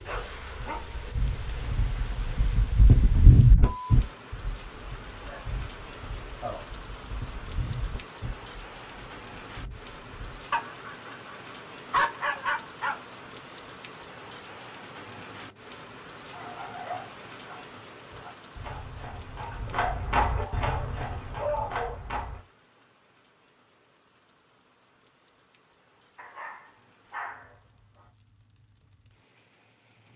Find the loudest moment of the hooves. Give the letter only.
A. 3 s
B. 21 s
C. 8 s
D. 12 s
A.